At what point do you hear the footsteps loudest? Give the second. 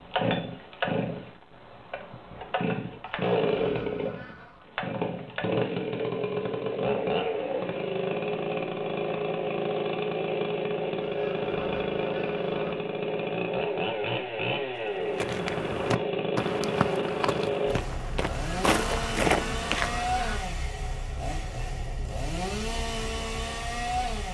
19 s.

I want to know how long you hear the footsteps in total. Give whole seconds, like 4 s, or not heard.
5 s.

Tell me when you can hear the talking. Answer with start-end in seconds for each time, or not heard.
not heard.